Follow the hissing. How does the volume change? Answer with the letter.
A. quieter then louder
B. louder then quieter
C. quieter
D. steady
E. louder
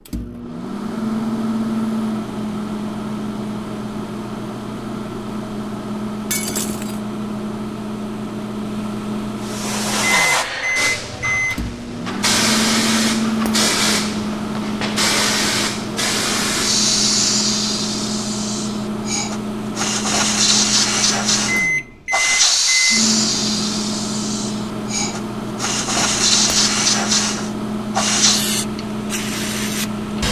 D.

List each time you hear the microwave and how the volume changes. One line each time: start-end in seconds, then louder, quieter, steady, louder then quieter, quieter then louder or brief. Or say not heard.
0.0-30.2 steady.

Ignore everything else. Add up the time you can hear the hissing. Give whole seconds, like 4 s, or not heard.
21 s.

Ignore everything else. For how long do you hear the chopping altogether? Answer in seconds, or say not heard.
not heard.